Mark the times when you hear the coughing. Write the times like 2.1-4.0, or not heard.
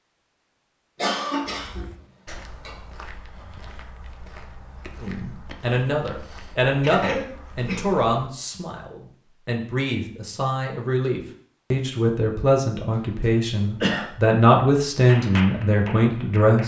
0.9-2.8, 6.8-8.1, 12.9-14.1.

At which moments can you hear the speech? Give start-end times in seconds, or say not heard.
5.0-16.6.